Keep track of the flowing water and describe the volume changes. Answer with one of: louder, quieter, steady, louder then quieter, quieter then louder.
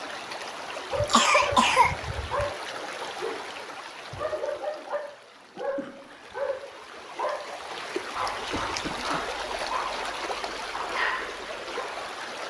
quieter then louder.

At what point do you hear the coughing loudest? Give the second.
2 s.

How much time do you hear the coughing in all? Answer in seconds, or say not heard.
3 s.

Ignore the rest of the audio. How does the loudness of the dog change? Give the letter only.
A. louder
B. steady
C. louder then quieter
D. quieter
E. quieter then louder
B.